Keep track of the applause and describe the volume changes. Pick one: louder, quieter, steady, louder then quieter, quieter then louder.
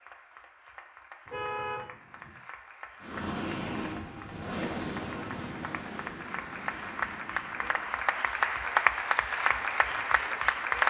louder.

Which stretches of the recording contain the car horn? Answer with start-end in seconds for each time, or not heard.
1.2-2.4.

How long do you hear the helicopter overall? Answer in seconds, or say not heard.
8 s.